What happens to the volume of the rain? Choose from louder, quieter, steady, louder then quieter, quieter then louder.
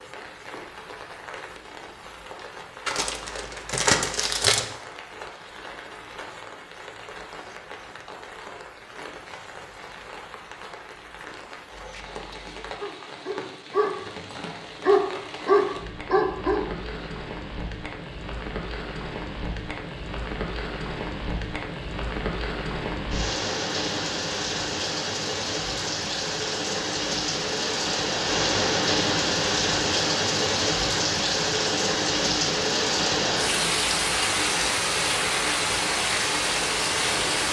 louder.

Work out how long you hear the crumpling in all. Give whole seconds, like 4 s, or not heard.
2 s.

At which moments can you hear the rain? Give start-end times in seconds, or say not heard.
0.0-37.4.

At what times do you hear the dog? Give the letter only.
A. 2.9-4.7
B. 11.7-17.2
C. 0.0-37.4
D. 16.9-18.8
B.